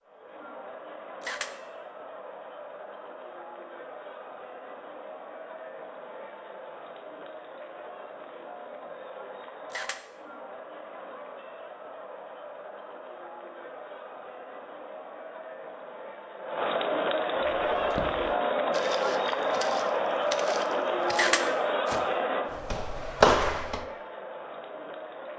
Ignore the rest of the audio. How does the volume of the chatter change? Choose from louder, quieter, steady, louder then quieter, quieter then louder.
louder.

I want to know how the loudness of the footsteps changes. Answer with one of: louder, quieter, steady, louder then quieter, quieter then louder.
louder.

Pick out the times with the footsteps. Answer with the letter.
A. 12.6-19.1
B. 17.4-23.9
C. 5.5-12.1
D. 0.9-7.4
B.